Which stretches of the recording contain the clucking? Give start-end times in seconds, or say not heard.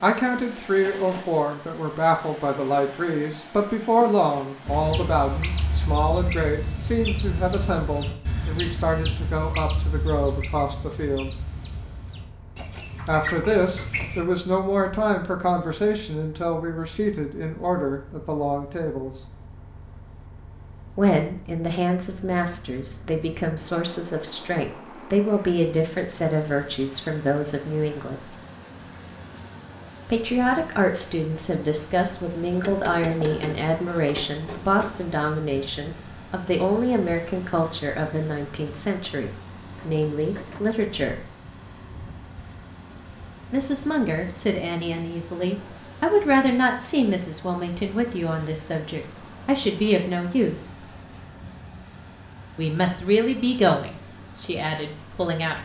4.7-14.2.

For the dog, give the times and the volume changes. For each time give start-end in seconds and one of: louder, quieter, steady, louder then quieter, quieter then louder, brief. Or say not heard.
not heard.